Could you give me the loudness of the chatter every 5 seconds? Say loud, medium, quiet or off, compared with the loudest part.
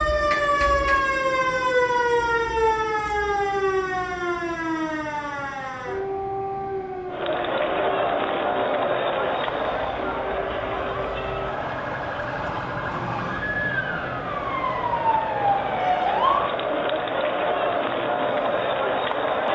off, loud, medium, loud.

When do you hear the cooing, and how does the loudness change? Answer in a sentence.
You can't hear the cooing here.